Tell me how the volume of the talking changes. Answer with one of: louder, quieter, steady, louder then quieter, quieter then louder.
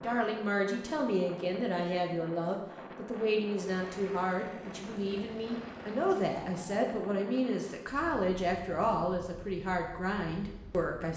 steady.